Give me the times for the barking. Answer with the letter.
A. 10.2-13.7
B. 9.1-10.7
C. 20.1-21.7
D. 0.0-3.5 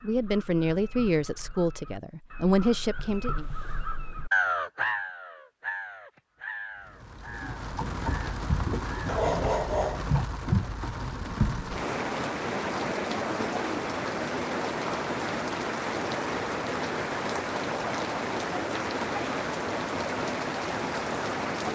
B.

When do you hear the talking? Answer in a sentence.
You can hear the talking from 0.0 to 3.5 s.